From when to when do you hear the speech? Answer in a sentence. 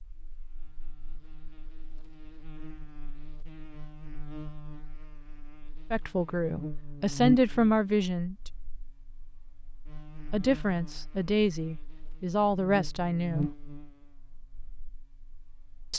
You can hear the speech from 5.9 to 8.5 s and from 10.2 to 13.5 s.